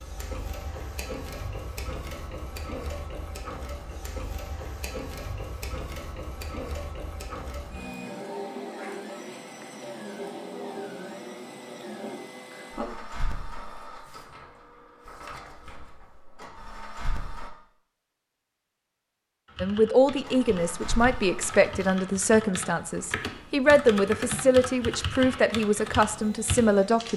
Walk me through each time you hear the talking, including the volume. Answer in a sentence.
You can hear the talking from 19.6 to 27.1 s, at a steady volume.